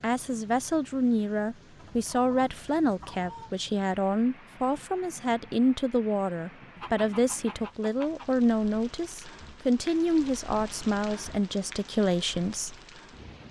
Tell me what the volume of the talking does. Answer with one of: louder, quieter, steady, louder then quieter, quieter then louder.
steady.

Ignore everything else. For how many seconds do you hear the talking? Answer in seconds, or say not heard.
13 s.